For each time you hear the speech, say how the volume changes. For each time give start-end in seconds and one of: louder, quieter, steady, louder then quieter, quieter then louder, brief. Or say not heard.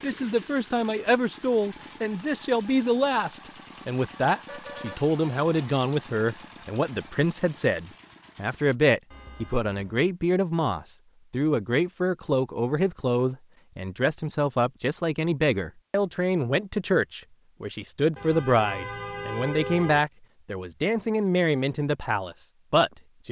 0.0-23.2 steady.